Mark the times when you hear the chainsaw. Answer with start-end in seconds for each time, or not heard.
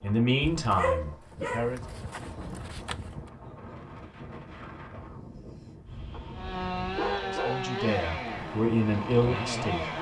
6.3-9.9.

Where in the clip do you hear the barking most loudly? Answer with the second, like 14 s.
1 s.